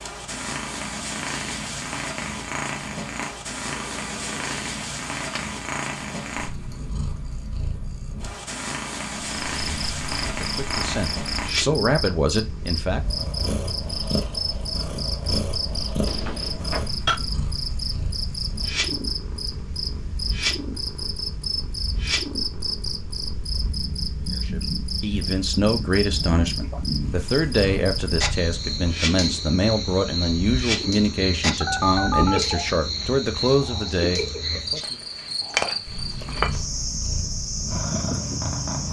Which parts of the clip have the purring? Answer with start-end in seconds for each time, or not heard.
0.0-38.8.